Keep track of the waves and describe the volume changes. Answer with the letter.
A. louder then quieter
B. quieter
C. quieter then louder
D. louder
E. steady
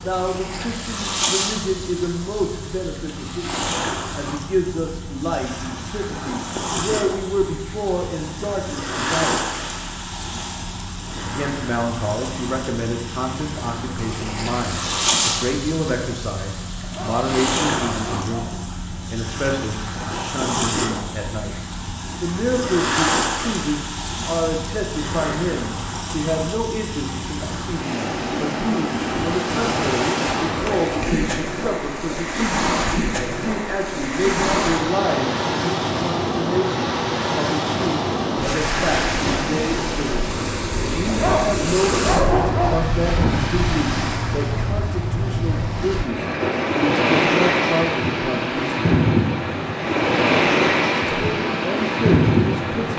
D.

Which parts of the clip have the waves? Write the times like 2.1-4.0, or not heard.
0.0-52.9.